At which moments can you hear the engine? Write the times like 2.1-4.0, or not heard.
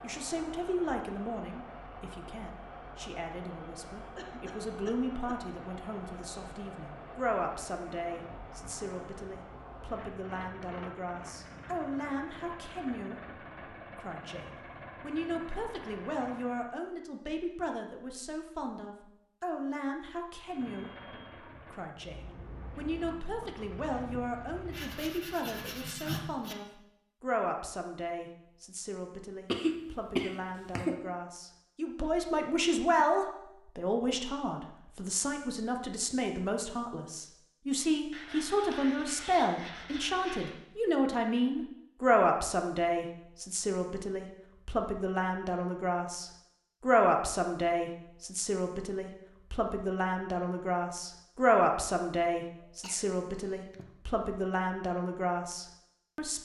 0.0-16.8, 20.4-25.3.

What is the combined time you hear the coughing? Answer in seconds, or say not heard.
4 s.